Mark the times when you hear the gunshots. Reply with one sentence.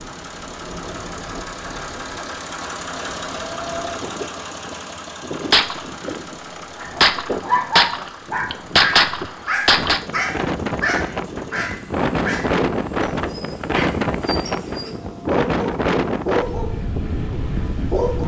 You can hear the gunshots from 5.5 to 10.0 s.